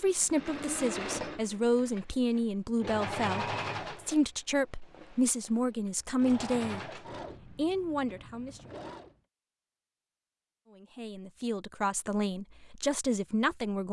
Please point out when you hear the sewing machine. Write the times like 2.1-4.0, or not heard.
0.0-9.2.